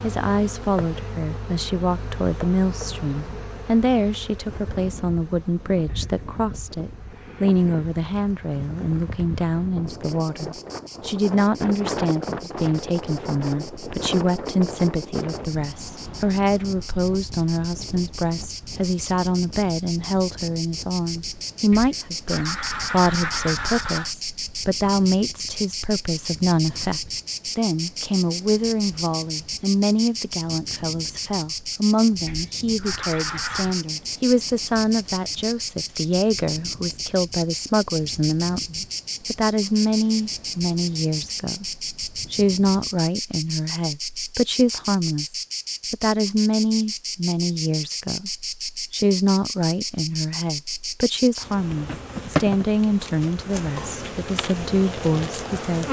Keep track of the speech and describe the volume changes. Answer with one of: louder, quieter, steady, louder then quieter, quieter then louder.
steady.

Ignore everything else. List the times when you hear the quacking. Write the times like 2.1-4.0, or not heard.
21.7-24.1, 32.2-33.9.